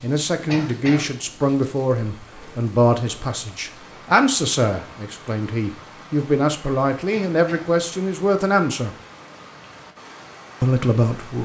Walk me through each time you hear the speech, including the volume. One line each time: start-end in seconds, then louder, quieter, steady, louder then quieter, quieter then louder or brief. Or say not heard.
0.0-8.9 steady
10.6-11.4 brief.